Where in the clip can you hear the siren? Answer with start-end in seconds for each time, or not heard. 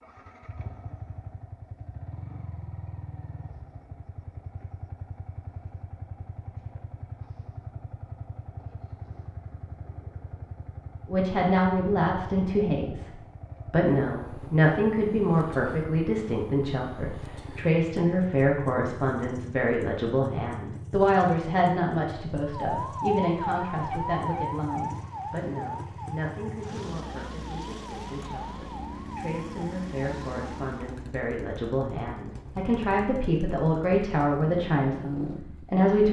22.5-30.9.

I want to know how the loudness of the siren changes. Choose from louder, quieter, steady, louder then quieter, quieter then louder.
quieter.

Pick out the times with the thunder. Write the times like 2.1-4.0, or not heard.
not heard.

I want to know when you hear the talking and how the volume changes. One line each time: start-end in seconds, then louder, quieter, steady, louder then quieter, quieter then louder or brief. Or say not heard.
11.1-36.0 quieter then louder.